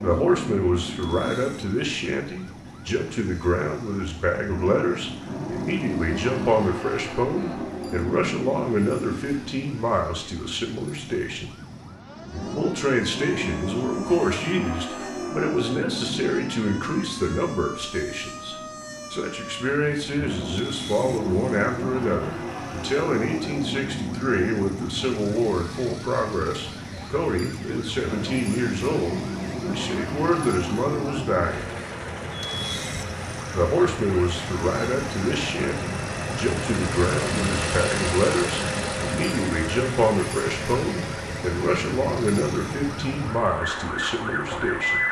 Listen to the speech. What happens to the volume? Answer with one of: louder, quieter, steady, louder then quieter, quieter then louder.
steady.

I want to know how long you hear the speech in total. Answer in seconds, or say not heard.
42 s.